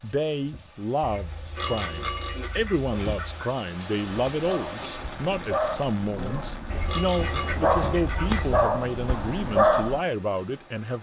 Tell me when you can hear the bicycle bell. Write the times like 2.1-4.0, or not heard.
1.6-2.5, 6.8-7.5.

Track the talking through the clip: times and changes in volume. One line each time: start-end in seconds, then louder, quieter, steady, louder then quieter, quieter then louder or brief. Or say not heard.
0.0-10.9 steady.